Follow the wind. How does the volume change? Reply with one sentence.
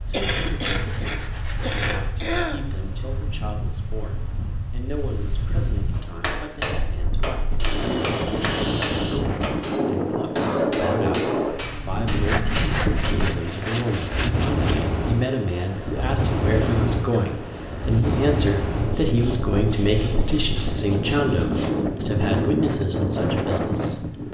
The loudness of the wind goes up.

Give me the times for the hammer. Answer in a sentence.
You can hear the hammer from 5.9 to 13.2 s.